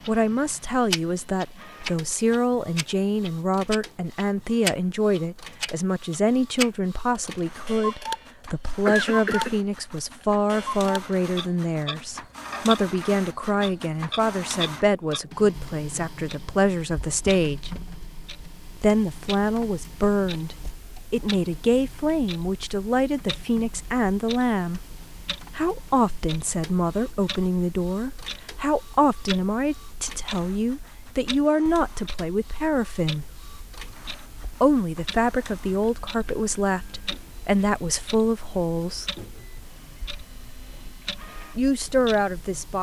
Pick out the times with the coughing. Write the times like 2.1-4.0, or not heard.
8.8-9.6.